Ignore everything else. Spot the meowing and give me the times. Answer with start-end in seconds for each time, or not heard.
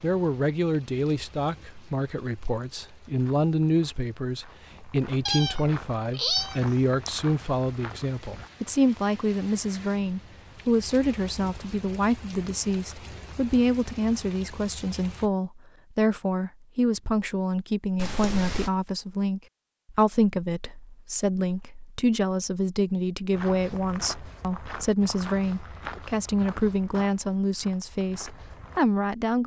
5.2-7.2, 17.9-18.7.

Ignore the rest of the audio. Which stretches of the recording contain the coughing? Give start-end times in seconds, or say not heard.
not heard.